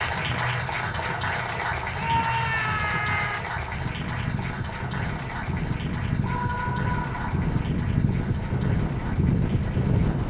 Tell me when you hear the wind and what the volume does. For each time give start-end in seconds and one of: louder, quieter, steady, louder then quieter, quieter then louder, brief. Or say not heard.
0.0-10.2 louder.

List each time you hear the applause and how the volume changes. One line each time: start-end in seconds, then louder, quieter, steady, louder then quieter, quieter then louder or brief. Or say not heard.
0.0-10.2 quieter.